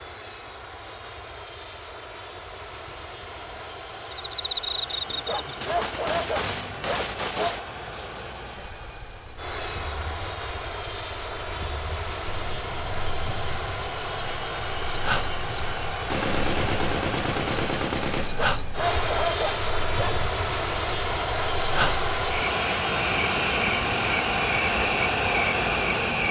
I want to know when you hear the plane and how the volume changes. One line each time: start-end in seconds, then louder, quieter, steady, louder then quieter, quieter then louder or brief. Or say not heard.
0.0-26.2 louder.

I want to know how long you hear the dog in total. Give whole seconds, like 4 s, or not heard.
4 s.